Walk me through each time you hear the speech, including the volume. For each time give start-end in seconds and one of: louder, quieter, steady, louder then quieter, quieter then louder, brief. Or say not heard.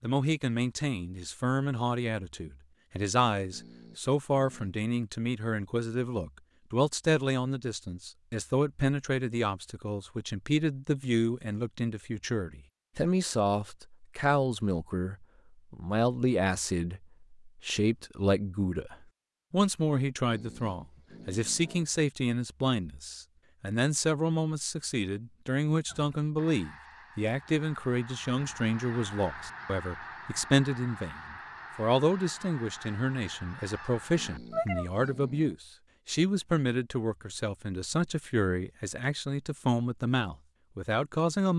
0.0-41.5 steady.